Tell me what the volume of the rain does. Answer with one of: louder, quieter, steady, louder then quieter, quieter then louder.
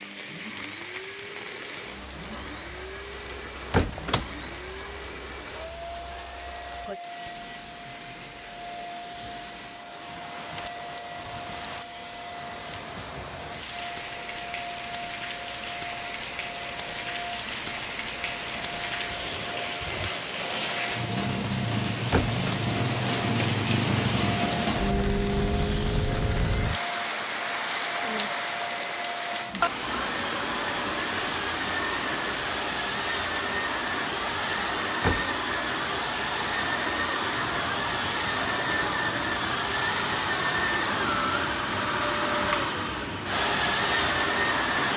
louder then quieter.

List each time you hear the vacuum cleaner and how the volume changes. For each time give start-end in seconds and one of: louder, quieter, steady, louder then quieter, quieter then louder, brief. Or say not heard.
0.0-44.9 louder.